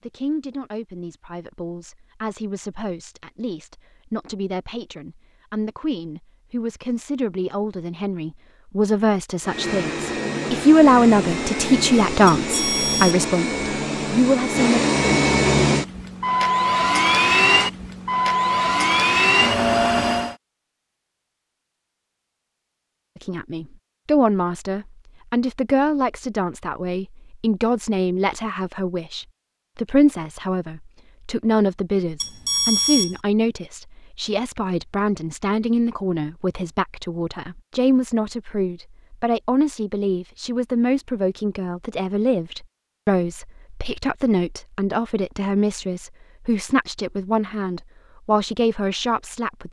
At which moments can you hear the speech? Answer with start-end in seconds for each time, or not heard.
0.1-14.8, 23.1-49.6.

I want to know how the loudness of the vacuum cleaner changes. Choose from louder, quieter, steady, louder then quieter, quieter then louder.
louder.